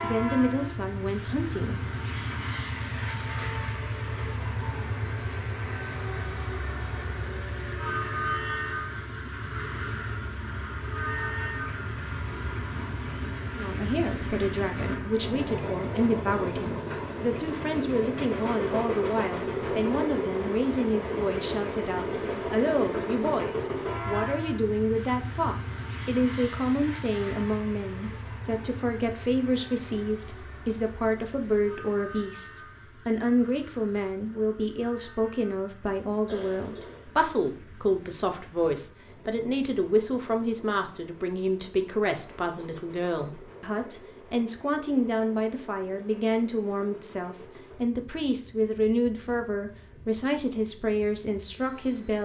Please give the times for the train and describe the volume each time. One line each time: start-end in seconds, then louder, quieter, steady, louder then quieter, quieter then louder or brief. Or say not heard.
0.0-52.2 quieter.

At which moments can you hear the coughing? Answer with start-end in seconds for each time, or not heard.
36.2-37.1.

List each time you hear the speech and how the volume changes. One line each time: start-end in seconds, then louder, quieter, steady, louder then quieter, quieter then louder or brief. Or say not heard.
0.0-1.8 brief
13.6-52.2 steady.